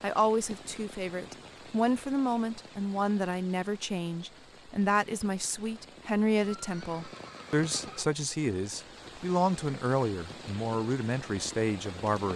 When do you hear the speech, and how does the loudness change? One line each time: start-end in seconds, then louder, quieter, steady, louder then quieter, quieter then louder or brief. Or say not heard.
0.0-12.3 steady.